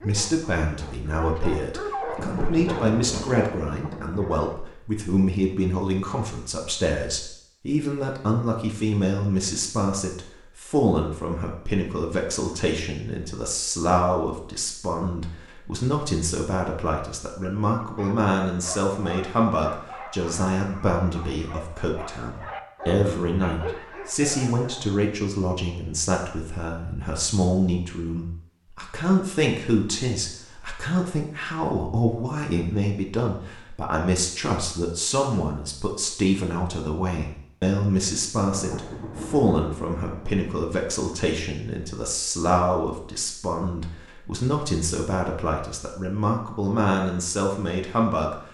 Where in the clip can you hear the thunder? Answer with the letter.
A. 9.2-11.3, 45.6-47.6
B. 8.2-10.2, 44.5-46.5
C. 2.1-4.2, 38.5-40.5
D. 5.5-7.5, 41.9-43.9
C.